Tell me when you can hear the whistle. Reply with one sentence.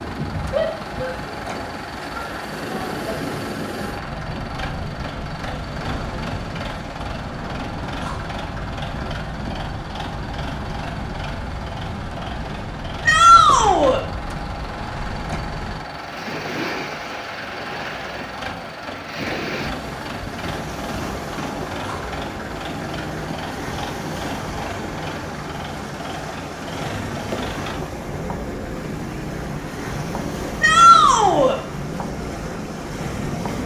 The whistle can't be heard in this clip.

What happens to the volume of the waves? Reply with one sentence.
The volume of the waves stays about the same.